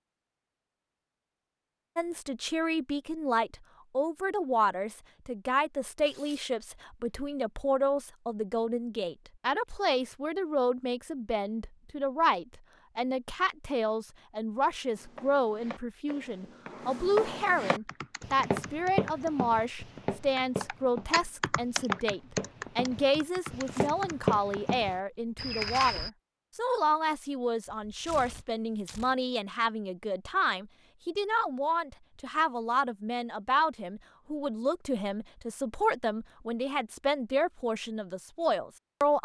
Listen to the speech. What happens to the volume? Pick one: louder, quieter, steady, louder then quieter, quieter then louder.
steady.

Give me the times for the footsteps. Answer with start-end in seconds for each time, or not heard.
14.9-26.1.